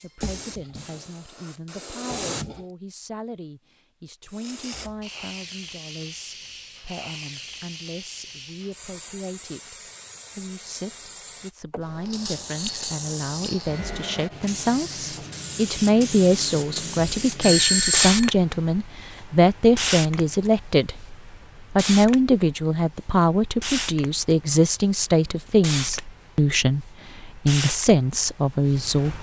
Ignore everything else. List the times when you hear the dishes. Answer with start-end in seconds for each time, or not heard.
not heard.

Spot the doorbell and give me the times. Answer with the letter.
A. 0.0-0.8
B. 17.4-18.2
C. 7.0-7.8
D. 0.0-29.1
B.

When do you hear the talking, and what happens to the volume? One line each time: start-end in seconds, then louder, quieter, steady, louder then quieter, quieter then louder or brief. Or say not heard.
0.0-29.1 louder.